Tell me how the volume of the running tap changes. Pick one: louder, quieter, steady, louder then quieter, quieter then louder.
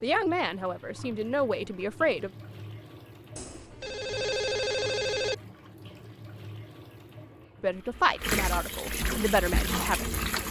louder.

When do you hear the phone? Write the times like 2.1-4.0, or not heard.
3.4-5.3.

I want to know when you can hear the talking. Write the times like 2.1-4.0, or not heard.
0.0-2.3, 7.6-10.2.